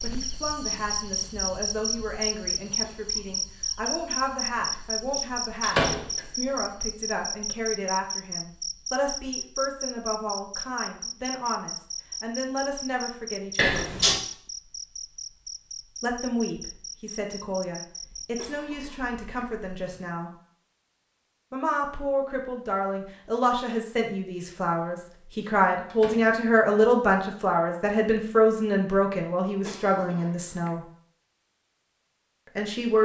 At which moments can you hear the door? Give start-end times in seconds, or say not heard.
5.6-6.2, 13.6-14.2, 25.9-26.4.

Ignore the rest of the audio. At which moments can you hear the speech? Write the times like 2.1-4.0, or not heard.
0.0-13.9, 16.0-20.3, 21.5-30.9, 32.5-33.0.